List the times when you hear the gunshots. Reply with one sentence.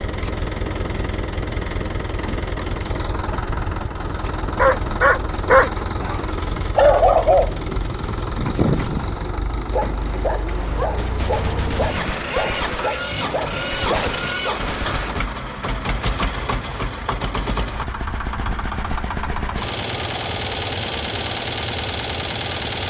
The gunshots can be heard from 10.6 to 15.3 s.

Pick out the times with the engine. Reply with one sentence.
The engine can be heard from 0.0 to 22.8 s.